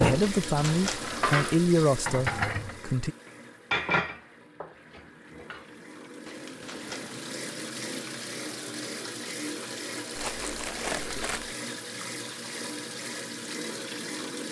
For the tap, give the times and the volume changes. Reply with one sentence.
The tap can be heard from 0.0 to 14.4 s, getting quieter then louder.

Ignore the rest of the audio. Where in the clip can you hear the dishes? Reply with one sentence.
The dishes can be heard from 0.0 to 2.8 s and from 3.7 to 5.7 s.